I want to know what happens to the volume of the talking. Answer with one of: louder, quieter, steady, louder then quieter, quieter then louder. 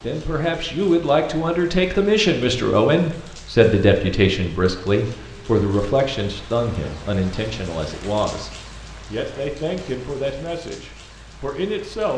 quieter.